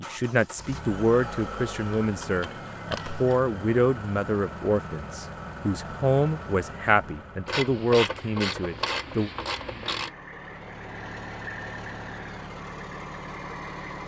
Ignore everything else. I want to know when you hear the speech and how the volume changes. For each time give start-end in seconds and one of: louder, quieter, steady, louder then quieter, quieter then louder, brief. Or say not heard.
0.0-9.3 steady.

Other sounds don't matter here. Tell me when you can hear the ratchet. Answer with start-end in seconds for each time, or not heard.
2.0-3.4, 7.5-10.1.